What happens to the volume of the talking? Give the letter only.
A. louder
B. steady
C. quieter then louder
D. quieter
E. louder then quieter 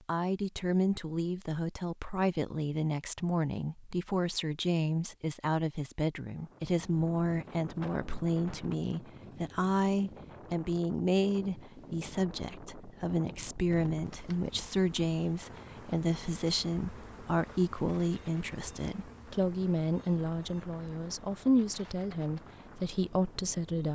B.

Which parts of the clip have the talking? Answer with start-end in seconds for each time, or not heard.
0.1-23.9.